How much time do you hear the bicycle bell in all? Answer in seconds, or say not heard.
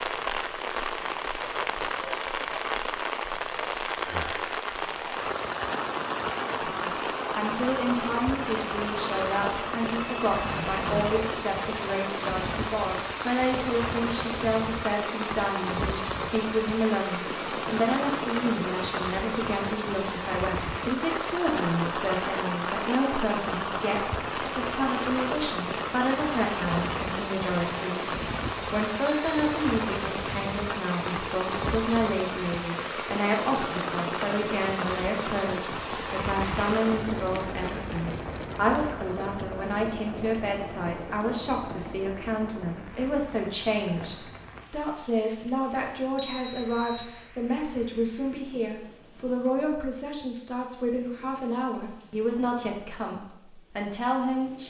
3 s.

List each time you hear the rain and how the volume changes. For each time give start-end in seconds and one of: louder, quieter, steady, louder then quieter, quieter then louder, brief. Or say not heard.
0.0-54.6 quieter.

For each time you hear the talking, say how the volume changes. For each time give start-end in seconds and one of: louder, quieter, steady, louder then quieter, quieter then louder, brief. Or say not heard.
6.7-54.6 steady.